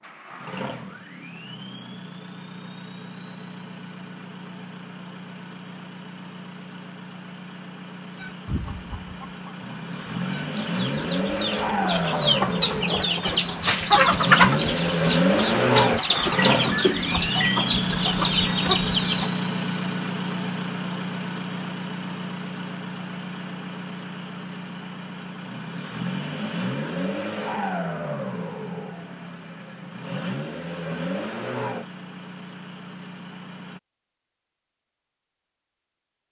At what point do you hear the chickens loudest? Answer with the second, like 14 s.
14 s.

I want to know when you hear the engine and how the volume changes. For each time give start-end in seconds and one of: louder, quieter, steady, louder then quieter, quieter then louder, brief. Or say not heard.
0.0-33.8 louder then quieter.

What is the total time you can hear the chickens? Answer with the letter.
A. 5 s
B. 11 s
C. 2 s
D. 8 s
B.